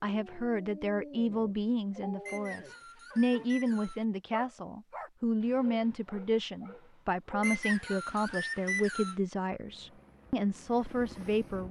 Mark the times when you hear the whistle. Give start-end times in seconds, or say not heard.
2.2-4.0, 7.4-9.2.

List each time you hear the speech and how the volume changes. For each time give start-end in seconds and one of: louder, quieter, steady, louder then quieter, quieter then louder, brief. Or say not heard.
0.0-11.6 steady.